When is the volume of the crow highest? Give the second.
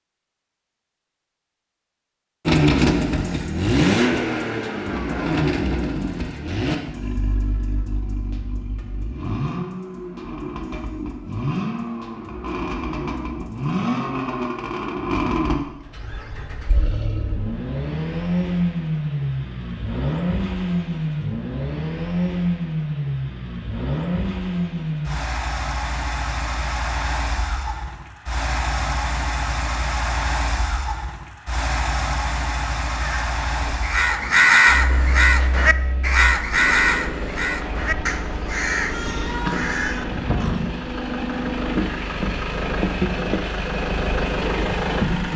35 s.